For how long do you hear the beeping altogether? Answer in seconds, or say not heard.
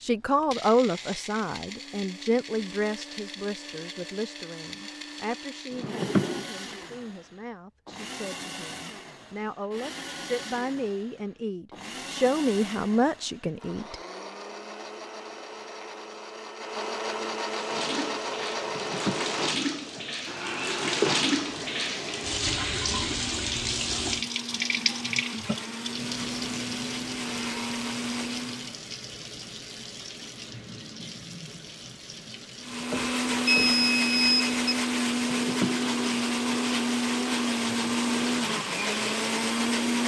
2 s.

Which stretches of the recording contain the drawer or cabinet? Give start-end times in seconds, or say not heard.
5.7-6.5, 18.7-21.1, 35.3-36.5.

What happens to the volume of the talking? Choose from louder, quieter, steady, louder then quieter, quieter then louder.
quieter then louder.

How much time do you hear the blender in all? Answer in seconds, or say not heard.
36 s.